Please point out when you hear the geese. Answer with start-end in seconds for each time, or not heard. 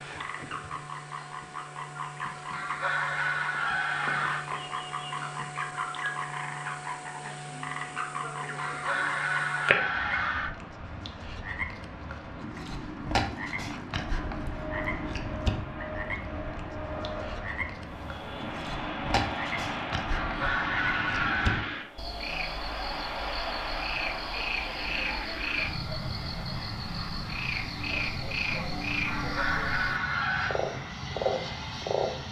2.5-4.5, 8.6-10.6, 20.1-21.6, 29.1-30.6.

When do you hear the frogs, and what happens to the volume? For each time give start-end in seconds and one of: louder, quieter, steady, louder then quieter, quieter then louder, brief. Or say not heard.
0.0-32.1 steady.